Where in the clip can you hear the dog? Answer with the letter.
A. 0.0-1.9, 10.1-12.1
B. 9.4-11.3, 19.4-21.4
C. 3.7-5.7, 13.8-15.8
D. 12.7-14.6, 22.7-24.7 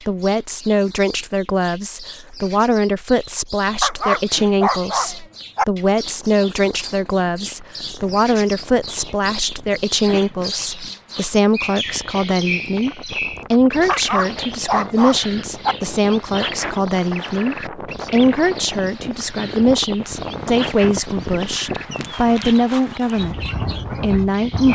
C.